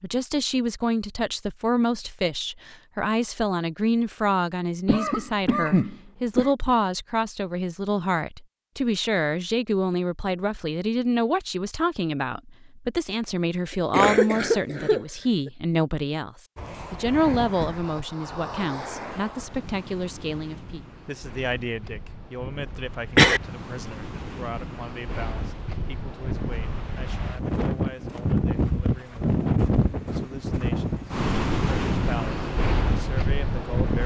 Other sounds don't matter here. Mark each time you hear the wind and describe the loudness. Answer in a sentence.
You can hear the wind from 16.6 to 34.0 s, getting quieter then louder.